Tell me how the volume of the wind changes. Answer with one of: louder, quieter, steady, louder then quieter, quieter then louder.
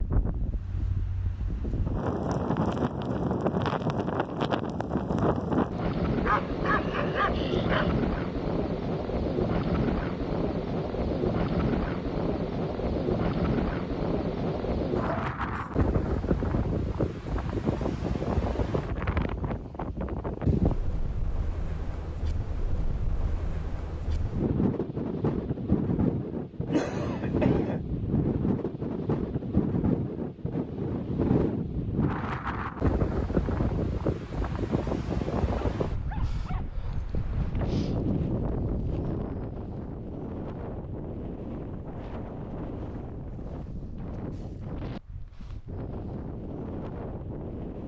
quieter.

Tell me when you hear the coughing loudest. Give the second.
27 s.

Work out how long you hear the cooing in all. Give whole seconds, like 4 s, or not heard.
not heard.